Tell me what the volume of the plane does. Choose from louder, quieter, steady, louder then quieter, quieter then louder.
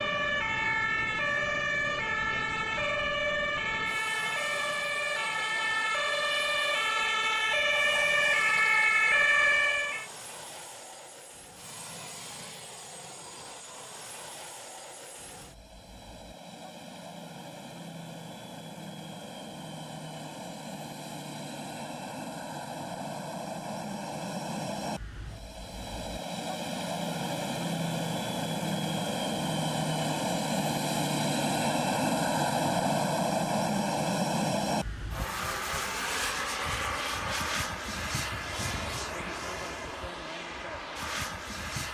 louder.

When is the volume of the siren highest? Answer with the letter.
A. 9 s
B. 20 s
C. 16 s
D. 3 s
A.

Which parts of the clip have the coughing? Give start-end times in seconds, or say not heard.
not heard.